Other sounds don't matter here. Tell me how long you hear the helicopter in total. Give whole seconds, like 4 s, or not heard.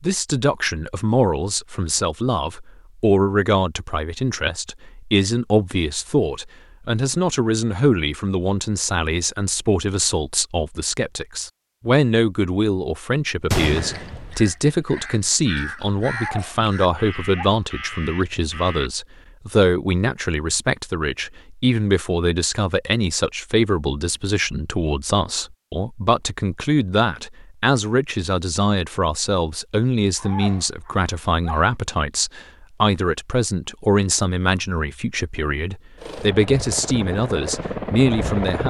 3 s.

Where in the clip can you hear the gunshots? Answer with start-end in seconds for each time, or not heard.
13.5-14.5.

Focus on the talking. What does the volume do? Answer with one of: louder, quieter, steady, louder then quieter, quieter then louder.
steady.